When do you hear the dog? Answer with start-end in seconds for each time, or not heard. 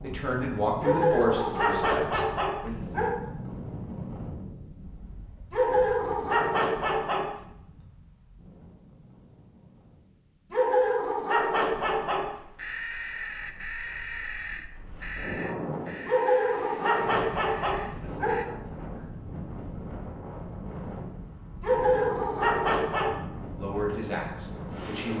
0.8-3.1, 5.5-7.3, 10.5-12.3, 16.1-18.5, 21.6-23.2.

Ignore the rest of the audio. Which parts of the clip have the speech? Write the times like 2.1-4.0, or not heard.
0.0-2.8, 23.6-25.1.